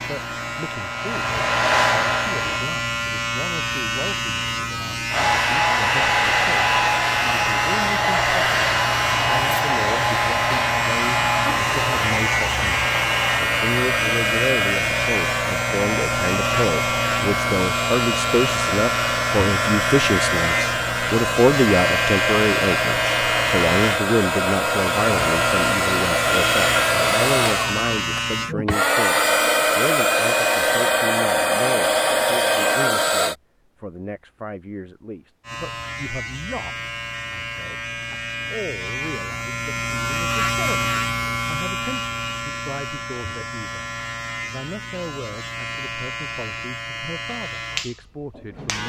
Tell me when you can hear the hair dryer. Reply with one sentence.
The hair dryer can be heard from 0.0 to 2.5 s and from 5.1 to 33.4 s.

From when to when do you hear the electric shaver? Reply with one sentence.
You can hear the electric shaver from 0.0 to 28.6 s and from 35.4 to 48.8 s.